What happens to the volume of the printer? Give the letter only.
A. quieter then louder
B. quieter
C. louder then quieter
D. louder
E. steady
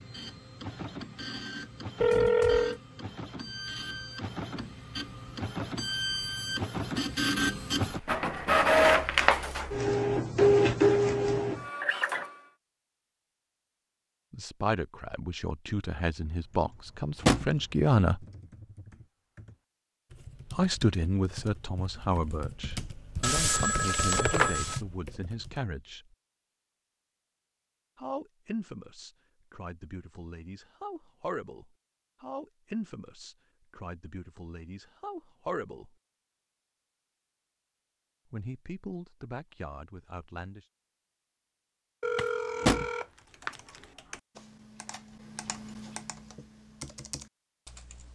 D.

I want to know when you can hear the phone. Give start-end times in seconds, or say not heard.
2.0-2.8, 23.2-24.8, 42.0-43.5.